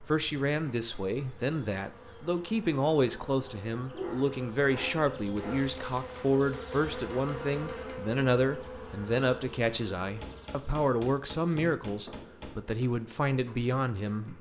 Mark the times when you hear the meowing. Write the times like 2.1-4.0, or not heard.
not heard.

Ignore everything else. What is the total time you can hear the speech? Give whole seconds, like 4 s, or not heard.
14 s.